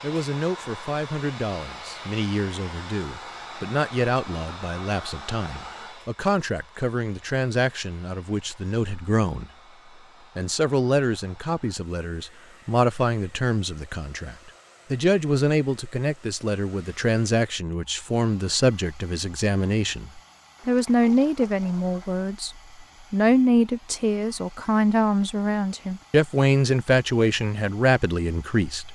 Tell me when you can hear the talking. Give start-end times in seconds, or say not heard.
0.0-9.5, 10.3-22.5, 23.1-28.9.